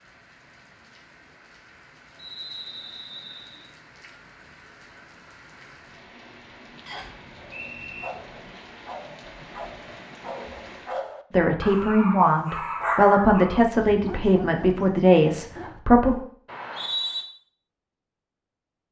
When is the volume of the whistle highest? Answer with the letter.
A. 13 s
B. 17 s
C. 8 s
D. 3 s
B.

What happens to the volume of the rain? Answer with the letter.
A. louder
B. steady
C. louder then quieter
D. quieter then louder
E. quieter
A.